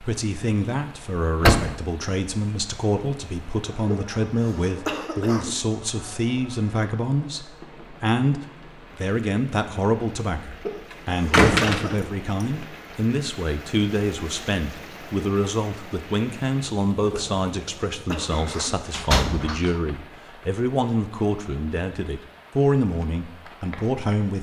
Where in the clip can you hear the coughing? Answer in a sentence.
The coughing can be heard from 3.9 to 5.5 s, from 10.7 to 12.0 s and from 17.1 to 18.8 s.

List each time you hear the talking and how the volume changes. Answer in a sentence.
The talking can be heard from 0.0 to 24.3 s, at a steady volume.